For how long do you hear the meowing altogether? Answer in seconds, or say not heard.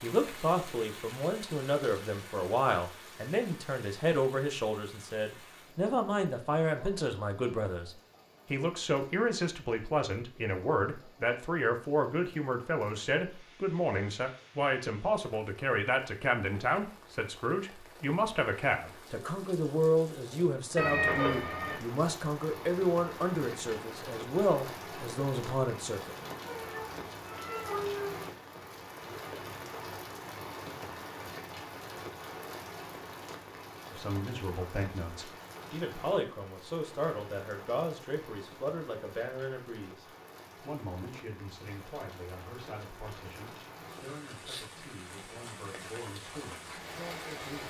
3 s.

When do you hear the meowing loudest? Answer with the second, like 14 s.
21 s.